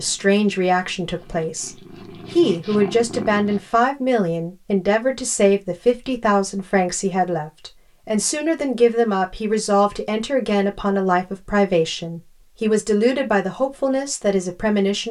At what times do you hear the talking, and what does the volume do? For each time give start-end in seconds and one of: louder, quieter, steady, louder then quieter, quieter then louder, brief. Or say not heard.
0.0-15.0 steady.